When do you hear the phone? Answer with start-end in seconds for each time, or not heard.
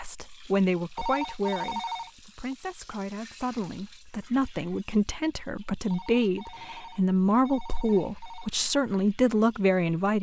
0.9-2.5, 5.9-8.5.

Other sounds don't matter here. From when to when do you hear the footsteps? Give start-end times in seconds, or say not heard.
not heard.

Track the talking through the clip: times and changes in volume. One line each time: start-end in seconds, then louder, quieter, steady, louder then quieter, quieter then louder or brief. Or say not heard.
0.0-10.1 quieter then louder.